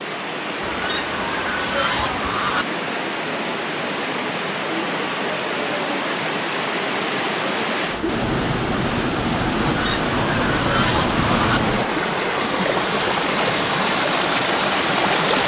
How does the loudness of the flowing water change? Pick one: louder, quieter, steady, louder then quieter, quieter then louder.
louder.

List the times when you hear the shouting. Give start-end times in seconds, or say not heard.
not heard.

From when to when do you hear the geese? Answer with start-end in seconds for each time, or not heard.
0.6-2.6, 9.7-11.6.